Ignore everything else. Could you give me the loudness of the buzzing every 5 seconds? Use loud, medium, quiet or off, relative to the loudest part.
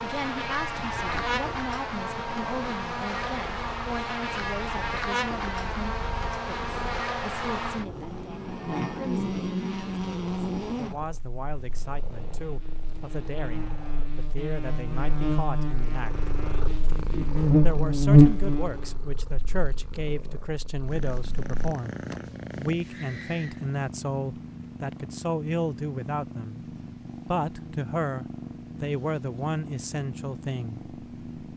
medium, medium, quiet, loud, off, off, off.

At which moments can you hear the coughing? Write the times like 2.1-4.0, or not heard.
not heard.